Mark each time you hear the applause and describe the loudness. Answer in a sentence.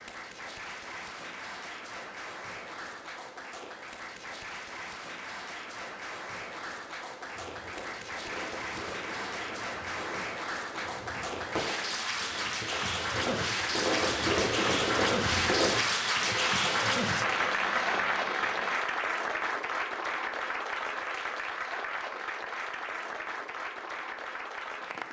You can hear the applause from 0.0 to 25.0 s, getting louder then quieter.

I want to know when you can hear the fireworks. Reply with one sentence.
You can hear the fireworks from 7.3 to 18.8 s.